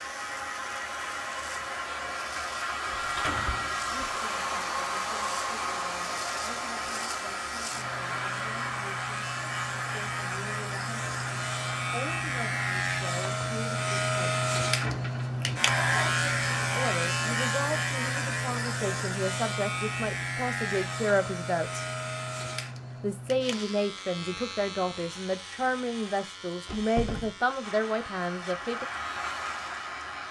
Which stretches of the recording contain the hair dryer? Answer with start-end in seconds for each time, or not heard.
0.0-12.8, 27.6-30.2.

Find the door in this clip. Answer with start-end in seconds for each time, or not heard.
2.9-4.0, 14.8-15.4, 26.6-27.6.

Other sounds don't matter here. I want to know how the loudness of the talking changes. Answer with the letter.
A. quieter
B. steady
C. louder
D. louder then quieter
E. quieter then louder
C.